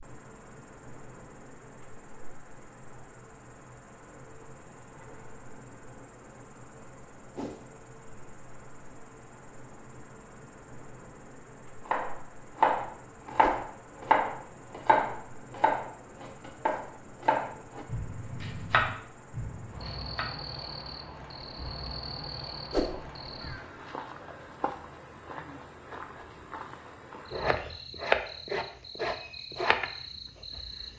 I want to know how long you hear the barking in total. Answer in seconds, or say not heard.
not heard.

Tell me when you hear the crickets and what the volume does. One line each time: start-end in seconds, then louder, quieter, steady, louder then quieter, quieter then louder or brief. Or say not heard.
0.0-30.9 louder.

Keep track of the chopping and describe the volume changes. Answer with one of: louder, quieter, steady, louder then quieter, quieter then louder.
quieter.